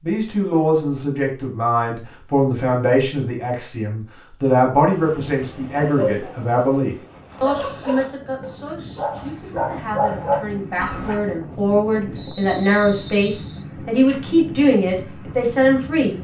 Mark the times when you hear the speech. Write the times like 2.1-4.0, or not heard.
0.0-16.1.